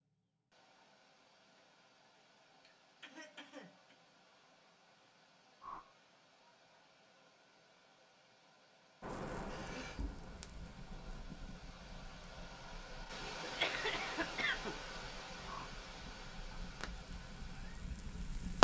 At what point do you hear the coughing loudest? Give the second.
14 s.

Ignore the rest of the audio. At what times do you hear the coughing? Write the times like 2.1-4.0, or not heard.
2.6-4.0, 9.4-10.1, 13.4-14.8.